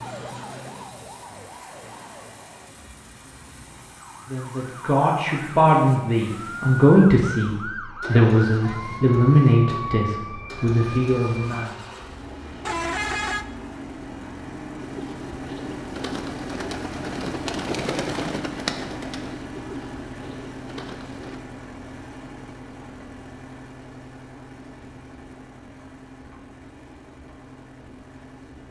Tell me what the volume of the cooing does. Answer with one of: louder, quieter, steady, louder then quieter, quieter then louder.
louder then quieter.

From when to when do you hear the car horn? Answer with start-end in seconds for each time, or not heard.
12.7-13.4.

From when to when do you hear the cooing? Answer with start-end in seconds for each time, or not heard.
14.8-21.4.